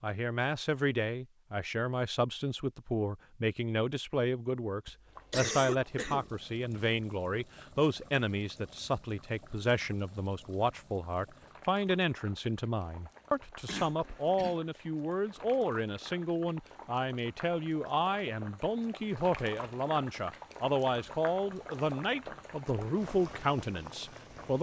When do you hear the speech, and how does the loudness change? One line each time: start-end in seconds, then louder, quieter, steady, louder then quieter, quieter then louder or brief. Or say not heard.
0.0-24.5 steady.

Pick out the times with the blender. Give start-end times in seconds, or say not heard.
not heard.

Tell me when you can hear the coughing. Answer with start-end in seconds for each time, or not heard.
4.8-6.3, 13.7-14.6.